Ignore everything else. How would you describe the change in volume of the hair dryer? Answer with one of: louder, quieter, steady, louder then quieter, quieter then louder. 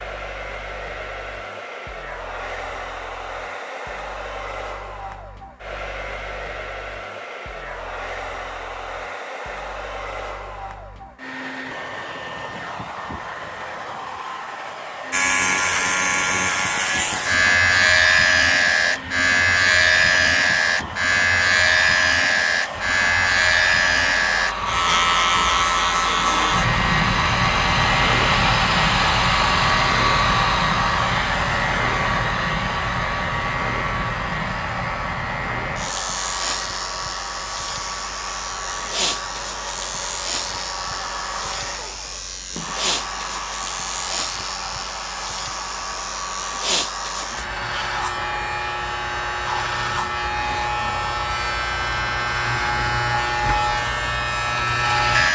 louder then quieter.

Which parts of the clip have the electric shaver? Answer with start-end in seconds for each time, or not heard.
15.1-55.3.